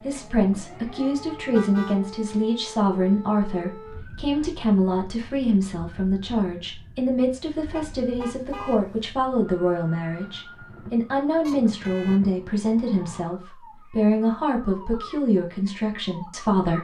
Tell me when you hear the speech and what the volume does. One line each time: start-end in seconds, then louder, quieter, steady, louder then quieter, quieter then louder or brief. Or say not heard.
0.0-16.7 steady.